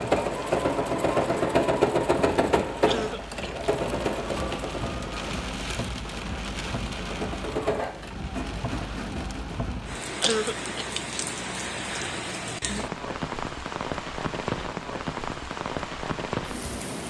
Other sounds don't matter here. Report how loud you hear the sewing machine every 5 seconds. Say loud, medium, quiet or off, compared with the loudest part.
loud, medium, off, off.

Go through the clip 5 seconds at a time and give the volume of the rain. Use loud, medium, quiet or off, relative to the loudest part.
medium, loud, loud, loud.